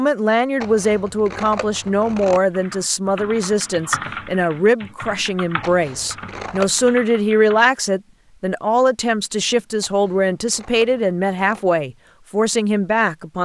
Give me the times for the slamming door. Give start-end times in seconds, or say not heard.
not heard.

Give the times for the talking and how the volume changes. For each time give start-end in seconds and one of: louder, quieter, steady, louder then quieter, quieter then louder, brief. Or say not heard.
0.0-13.3 steady.